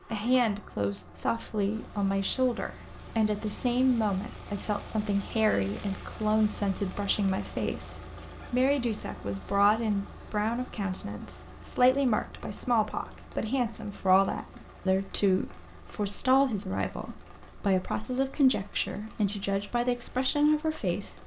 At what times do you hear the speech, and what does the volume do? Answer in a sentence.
The speech can be heard from 0.1 to 21.2 s, at a steady volume.